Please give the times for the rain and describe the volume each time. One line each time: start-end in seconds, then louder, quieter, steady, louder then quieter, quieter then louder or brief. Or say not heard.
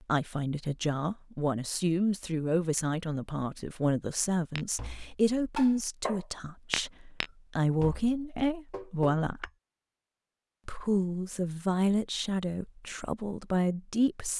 not heard.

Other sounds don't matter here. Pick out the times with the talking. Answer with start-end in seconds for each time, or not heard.
0.0-9.5, 10.7-14.3.